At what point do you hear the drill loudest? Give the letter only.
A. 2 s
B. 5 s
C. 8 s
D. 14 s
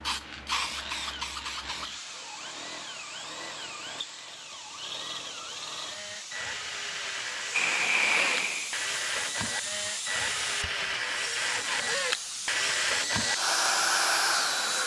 D.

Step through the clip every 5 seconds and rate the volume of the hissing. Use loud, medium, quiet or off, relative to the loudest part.
medium, loud, loud.